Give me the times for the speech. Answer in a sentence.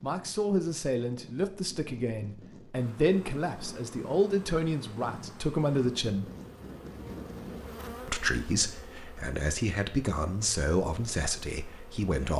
You can hear the speech from 0.0 to 6.3 s and from 8.1 to 12.3 s.